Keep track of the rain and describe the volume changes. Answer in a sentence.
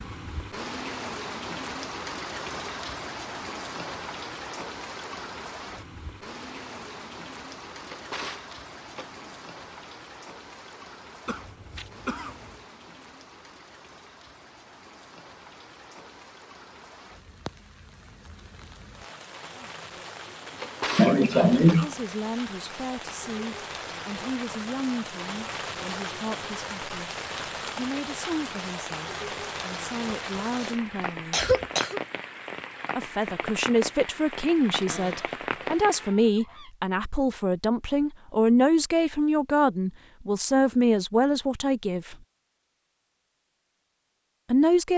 The loudness of the rain goes down, then up.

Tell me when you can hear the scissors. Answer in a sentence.
The scissors can't be heard in this clip.